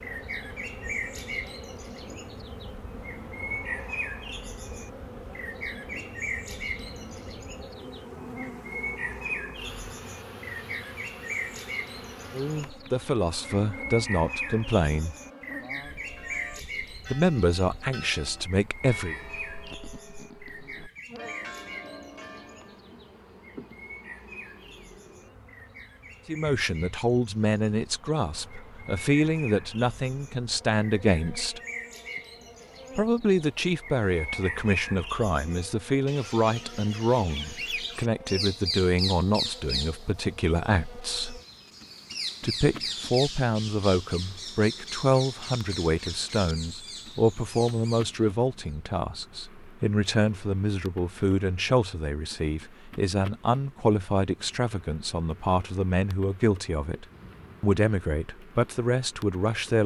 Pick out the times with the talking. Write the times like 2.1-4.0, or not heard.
12.3-15.2, 17.1-19.1, 26.2-31.6, 33.0-41.4, 42.4-59.8.